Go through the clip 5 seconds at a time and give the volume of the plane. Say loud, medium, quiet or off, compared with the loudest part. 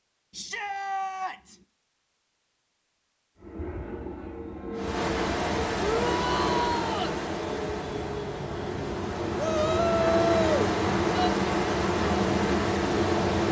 medium, medium, loud.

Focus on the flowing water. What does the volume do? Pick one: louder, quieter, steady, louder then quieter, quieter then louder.
quieter then louder.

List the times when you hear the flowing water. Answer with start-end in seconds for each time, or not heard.
4.7-13.4.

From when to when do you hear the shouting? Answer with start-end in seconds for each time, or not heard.
0.3-1.6, 5.8-7.2, 9.3-11.3.